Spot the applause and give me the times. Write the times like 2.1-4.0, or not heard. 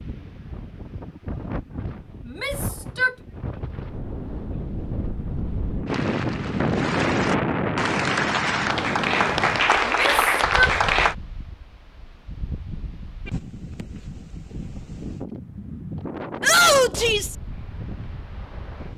5.8-11.2.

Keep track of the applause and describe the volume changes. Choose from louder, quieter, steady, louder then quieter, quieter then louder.
louder.